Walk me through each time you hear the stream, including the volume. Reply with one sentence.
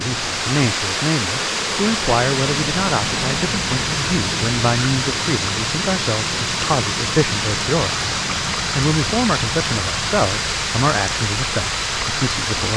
You can hear the stream from 0.0 to 12.7 s, at a steady volume.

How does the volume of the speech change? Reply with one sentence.
The volume of the speech stays about the same.